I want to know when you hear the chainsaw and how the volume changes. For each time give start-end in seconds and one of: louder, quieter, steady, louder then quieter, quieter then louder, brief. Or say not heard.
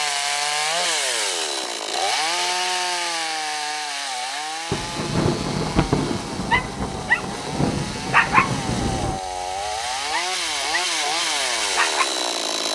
0.0-12.6 quieter then louder.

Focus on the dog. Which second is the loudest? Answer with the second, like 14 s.
8 s.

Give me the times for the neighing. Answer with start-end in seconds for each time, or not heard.
not heard.